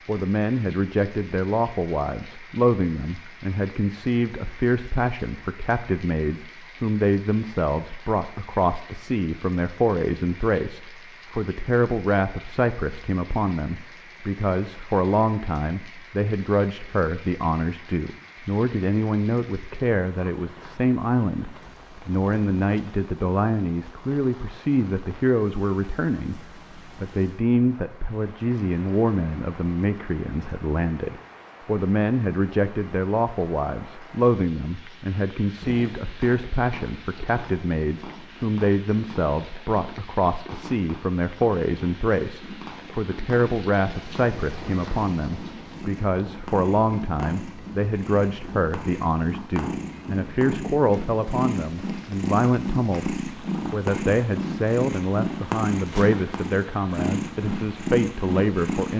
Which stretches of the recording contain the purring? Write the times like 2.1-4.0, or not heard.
35.4-58.9.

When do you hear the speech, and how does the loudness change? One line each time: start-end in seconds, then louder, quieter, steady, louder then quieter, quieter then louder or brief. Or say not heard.
0.1-58.9 steady.